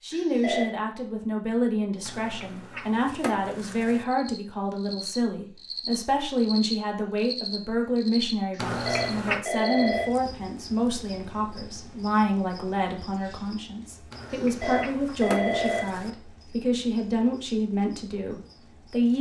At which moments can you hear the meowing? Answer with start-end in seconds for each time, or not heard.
2.0-4.0, 8.6-9.4, 14.1-16.1.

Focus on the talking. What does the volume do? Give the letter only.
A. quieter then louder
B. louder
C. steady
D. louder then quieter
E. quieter
C.